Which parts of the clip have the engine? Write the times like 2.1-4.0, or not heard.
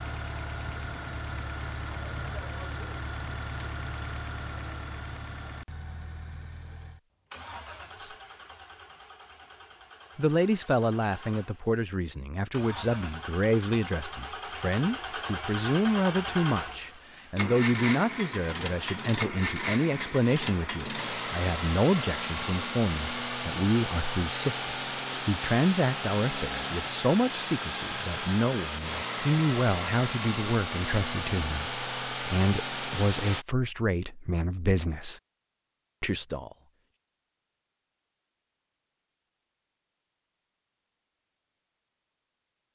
0.0-33.5.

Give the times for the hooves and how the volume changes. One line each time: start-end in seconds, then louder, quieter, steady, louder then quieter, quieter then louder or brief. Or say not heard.
not heard.